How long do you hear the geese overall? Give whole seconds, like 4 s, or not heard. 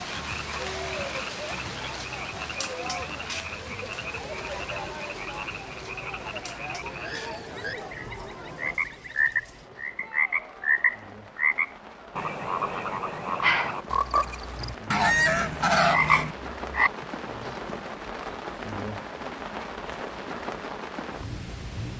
3 s.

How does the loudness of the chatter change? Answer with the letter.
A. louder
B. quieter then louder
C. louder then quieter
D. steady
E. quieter
E.